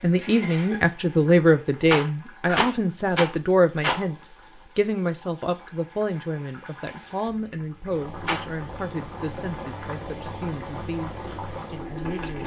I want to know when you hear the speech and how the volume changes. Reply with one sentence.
The speech can be heard from 0.0 to 12.4 s, getting quieter.